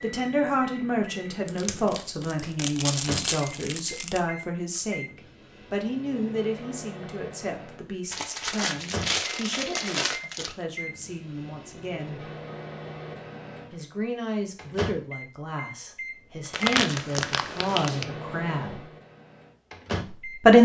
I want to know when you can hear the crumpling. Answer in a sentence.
The crumpling can be heard from 1.4 to 4.2 s, from 8.1 to 10.6 s and from 16.5 to 18.1 s.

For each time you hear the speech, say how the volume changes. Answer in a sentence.
You can hear the speech from 0.0 to 12.2 s, getting quieter; from 13.7 to 18.9 s, getting quieter then louder; and briefly from 20.1 to 20.6 s.